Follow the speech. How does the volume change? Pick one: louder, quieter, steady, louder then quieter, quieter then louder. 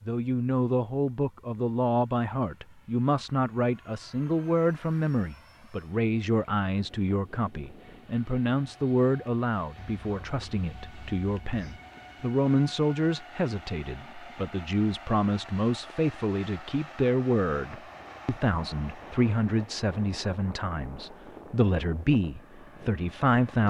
steady.